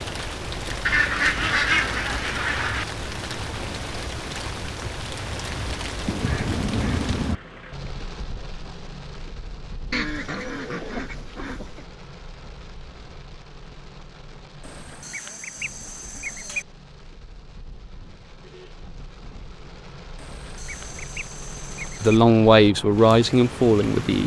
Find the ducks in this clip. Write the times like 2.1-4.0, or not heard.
0.8-2.9, 6.0-7.3, 9.9-11.8, 14.6-16.6, 20.1-22.2.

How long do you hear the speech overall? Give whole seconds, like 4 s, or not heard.
2 s.